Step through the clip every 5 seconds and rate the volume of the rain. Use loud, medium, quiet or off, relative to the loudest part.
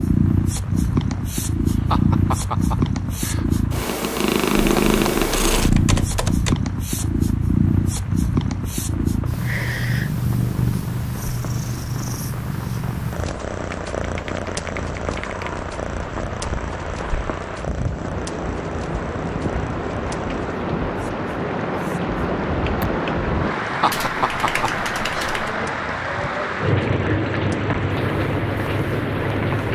quiet, quiet, quiet, medium, loud, loud.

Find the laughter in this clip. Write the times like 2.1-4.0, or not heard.
1.6-3.6, 23.6-25.3.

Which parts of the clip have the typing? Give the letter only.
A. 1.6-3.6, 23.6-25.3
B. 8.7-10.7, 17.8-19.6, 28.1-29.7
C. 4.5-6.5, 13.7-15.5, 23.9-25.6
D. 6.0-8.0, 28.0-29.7
C.